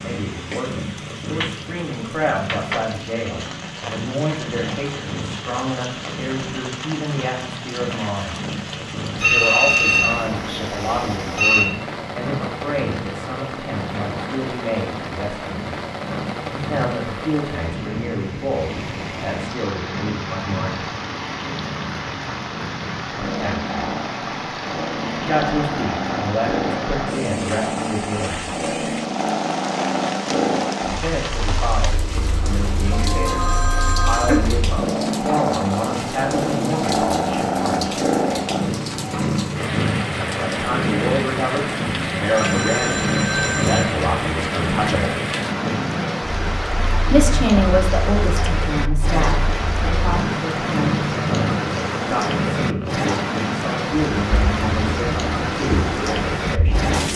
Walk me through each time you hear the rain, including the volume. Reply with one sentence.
You can hear the rain from 0.0 to 57.1 s, getting louder.